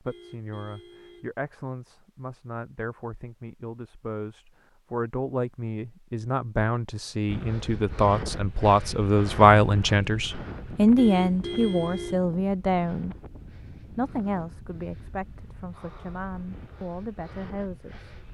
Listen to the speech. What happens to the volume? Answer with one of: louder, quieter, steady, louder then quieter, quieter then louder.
louder then quieter.